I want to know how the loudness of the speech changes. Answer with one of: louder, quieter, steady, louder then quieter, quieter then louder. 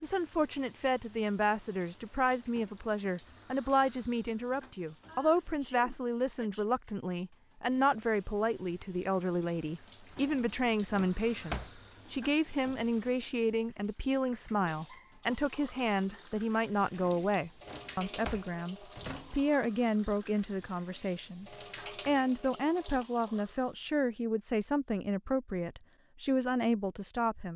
steady.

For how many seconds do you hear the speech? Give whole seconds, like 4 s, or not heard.
27 s.